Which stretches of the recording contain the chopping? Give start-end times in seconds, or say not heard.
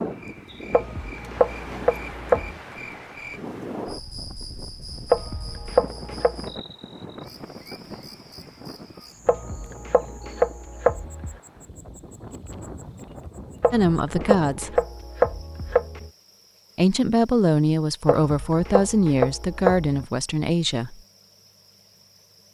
0.7-2.5, 5.1-6.5, 9.2-11.3, 13.6-16.1, 18.1-20.1.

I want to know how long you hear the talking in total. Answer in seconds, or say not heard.
5 s.